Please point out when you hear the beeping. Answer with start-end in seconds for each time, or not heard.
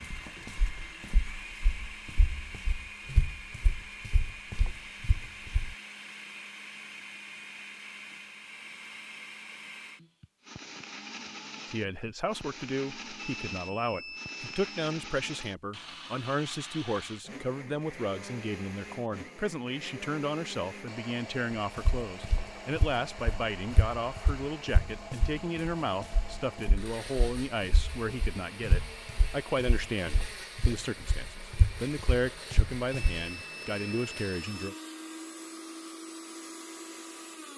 13.2-14.8, 32.9-34.8.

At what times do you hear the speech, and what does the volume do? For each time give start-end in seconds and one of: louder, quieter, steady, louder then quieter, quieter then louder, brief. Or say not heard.
11.7-34.8 steady.